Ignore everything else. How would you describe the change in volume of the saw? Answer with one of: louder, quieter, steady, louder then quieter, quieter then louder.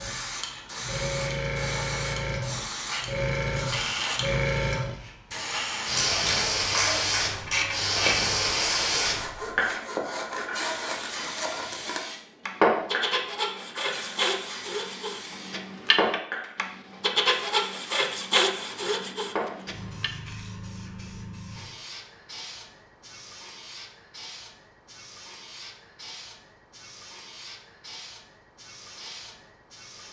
louder.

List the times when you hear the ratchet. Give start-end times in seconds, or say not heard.
6.0-8.3.